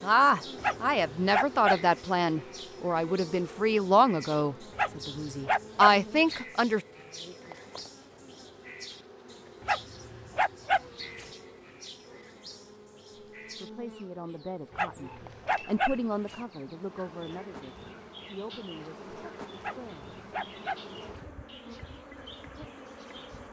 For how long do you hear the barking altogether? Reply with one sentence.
You can hear the barking for 8 seconds altogether.